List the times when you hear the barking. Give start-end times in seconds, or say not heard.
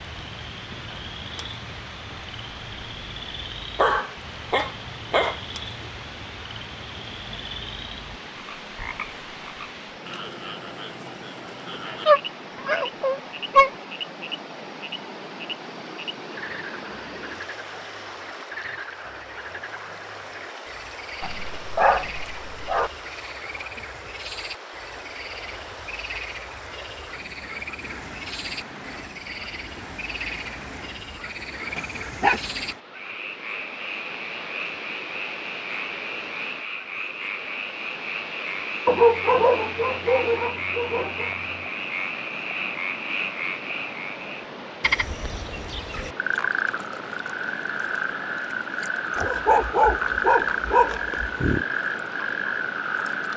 3.8-5.4, 12.1-13.7, 21.2-22.9, 31.8-32.5, 38.9-41.4, 49.1-51.6.